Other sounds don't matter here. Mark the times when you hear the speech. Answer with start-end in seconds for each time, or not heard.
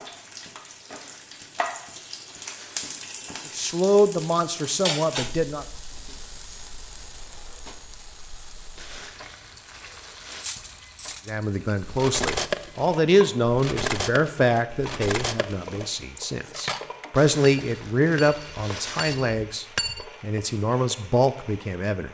3.5-5.7, 11.2-22.0.